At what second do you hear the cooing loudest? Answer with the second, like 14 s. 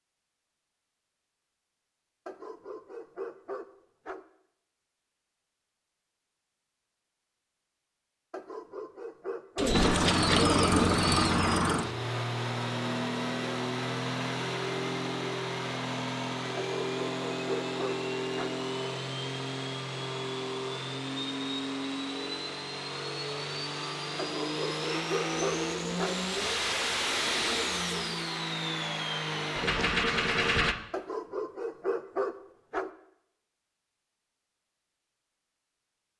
10 s.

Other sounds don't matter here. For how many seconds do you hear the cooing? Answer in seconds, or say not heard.
5 s.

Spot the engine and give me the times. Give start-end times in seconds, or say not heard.
9.7-30.8.